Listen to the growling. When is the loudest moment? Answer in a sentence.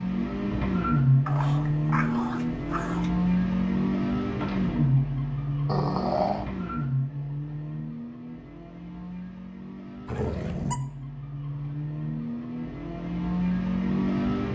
The volume of the growling peaks at 6 seconds.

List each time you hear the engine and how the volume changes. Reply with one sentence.
You can hear the engine from 0.0 to 14.5 s, getting quieter then louder.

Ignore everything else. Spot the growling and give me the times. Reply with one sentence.
You can hear the growling from 1.2 to 3.1 s, from 5.7 to 6.5 s and from 10.1 to 10.8 s.